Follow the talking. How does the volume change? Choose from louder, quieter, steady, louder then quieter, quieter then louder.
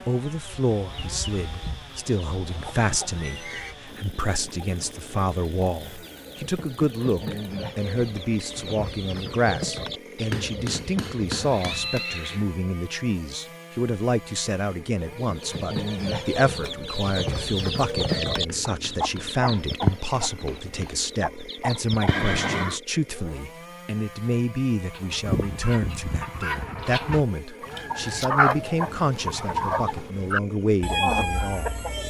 steady.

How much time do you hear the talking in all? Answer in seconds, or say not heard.
32 s.